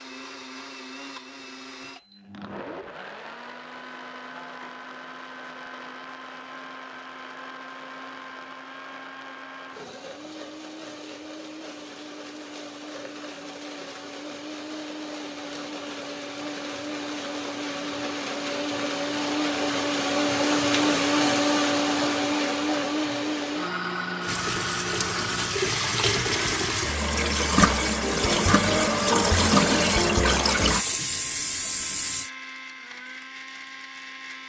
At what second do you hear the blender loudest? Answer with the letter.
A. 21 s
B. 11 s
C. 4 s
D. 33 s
A.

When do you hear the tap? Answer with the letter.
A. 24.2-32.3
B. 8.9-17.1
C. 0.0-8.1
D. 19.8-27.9
A.